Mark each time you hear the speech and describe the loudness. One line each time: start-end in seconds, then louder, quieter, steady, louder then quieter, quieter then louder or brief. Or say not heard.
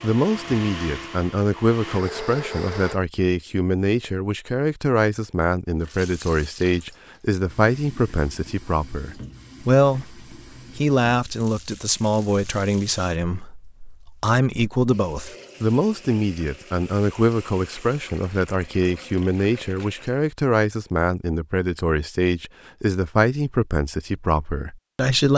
0.0-25.3 steady.